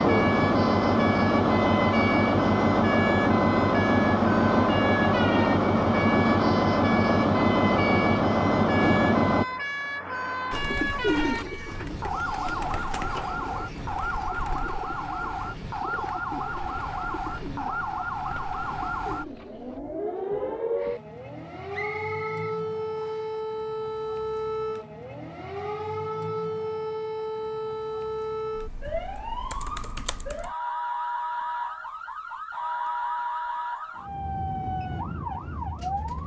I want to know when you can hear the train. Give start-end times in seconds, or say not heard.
0.0-9.4.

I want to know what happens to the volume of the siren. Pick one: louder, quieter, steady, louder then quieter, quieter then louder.
steady.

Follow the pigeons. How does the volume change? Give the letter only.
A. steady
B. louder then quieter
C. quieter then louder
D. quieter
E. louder
D.